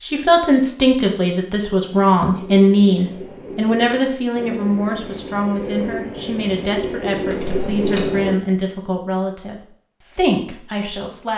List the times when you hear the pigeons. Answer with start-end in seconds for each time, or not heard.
1.9-8.3.